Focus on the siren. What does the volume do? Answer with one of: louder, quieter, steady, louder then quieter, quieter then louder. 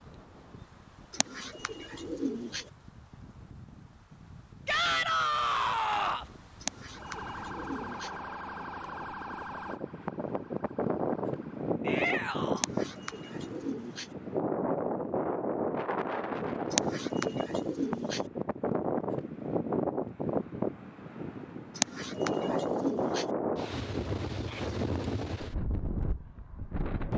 quieter.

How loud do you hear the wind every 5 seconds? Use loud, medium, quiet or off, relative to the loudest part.
quiet, quiet, loud, loud, loud, medium.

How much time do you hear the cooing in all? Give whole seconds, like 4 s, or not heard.
8 s.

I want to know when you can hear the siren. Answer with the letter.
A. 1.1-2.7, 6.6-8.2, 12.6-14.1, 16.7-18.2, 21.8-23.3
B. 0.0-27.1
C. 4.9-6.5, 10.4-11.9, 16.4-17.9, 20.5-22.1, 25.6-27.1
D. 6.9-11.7
D.